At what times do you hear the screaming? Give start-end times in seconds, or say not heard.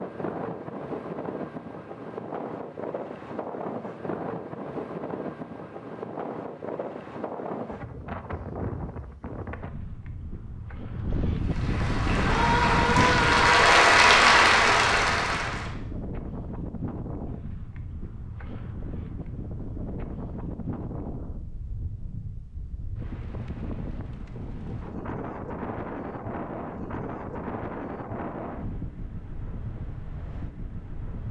12.2-13.6.